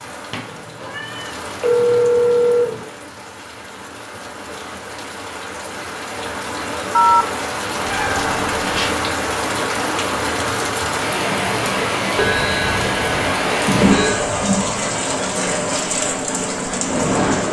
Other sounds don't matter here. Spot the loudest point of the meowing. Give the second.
14 s.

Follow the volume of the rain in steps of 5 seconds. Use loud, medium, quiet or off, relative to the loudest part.
quiet, loud, loud, loud.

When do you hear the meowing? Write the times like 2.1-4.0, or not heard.
0.3-1.3, 7.8-8.8, 13.7-14.8.